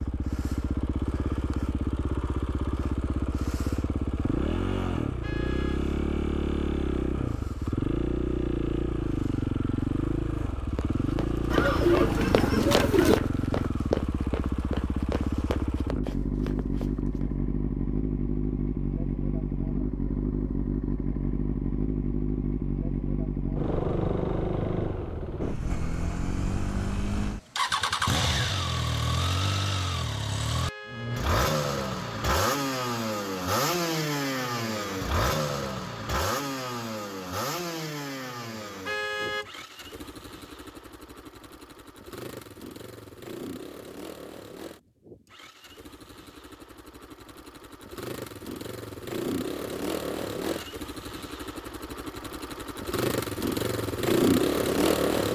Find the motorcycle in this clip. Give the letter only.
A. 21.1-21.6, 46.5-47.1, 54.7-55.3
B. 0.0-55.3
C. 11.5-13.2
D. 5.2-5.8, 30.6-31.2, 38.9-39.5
B.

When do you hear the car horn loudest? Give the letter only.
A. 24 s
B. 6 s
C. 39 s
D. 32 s
C.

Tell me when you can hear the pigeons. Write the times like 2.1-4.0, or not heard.
11.5-13.2.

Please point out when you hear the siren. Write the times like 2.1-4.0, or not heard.
not heard.